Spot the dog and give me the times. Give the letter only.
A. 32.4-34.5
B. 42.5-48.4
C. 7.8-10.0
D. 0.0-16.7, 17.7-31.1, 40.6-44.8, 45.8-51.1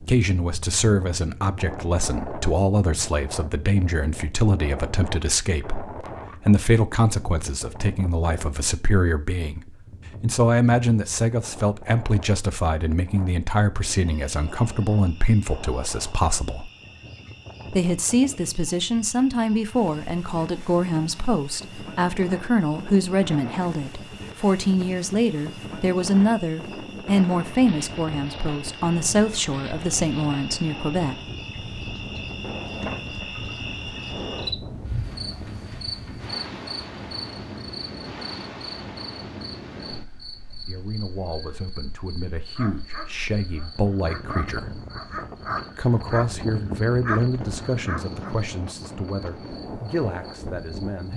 B.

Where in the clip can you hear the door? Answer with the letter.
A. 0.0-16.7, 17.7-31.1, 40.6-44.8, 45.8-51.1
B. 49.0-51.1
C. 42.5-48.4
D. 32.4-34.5
D.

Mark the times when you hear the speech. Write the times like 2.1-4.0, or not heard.
0.0-16.7, 17.7-31.1, 40.6-44.8, 45.8-51.1.